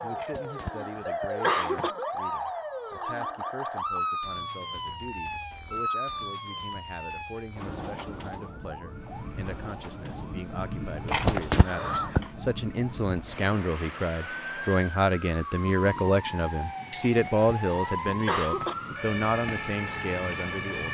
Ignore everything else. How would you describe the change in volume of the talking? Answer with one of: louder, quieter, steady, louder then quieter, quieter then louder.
louder.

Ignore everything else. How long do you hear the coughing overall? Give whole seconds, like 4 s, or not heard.
5 s.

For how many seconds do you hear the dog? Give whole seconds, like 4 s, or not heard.
not heard.